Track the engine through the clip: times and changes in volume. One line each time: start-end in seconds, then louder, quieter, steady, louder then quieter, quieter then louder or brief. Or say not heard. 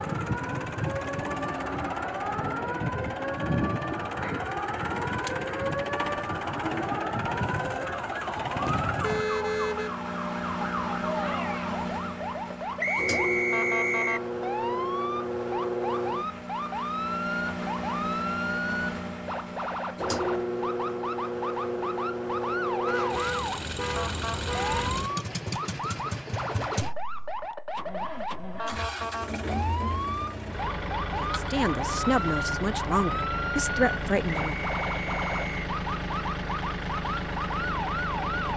0.0-38.5 steady.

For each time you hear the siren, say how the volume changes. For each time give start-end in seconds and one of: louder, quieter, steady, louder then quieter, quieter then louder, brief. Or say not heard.
0.0-38.5 steady.